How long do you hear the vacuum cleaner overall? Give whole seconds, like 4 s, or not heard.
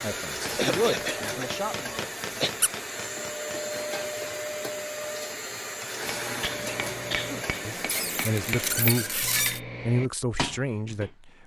9 s.